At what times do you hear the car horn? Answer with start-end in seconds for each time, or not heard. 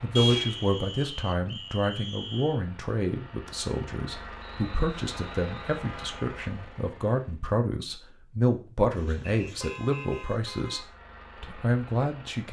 0.1-0.7, 4.9-6.3, 8.9-10.9.